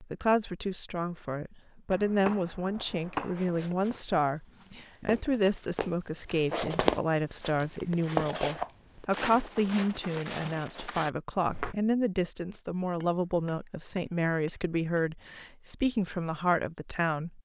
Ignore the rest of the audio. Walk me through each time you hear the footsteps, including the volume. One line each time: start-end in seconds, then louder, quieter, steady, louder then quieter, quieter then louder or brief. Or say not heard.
2.3-11.8 louder then quieter.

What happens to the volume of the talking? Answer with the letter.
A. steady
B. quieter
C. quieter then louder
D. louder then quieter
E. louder
A.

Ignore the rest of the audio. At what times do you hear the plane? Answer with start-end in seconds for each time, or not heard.
not heard.